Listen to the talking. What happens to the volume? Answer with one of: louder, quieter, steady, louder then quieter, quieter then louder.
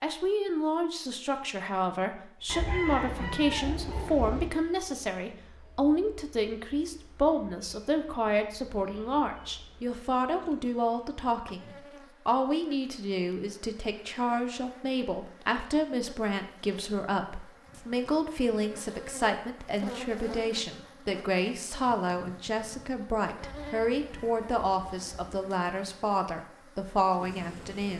steady.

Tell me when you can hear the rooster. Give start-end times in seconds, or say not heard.
2.5-4.5, 23.4-25.4.